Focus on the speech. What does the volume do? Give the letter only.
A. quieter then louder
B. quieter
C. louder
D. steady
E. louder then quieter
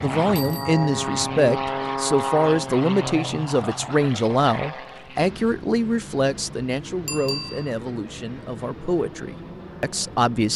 B.